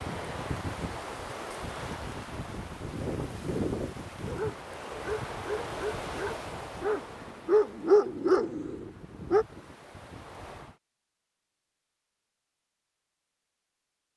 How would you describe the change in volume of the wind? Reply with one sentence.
The loudness of the wind goes down.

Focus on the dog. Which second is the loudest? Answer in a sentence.
The loudest moment of the dog is at 8 seconds.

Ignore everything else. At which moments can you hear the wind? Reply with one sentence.
You can hear the wind from 0.0 to 10.8 s.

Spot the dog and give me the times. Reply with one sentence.
The dog can be heard from 4.2 to 9.4 s.